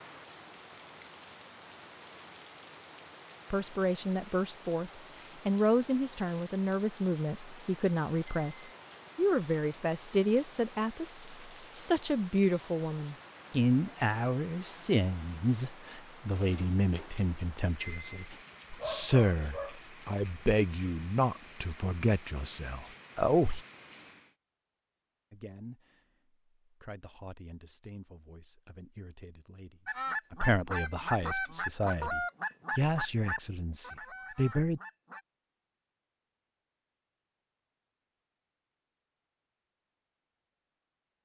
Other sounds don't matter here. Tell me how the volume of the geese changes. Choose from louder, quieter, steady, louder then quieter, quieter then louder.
quieter.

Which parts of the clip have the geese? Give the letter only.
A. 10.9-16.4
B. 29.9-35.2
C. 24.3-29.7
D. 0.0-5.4
B.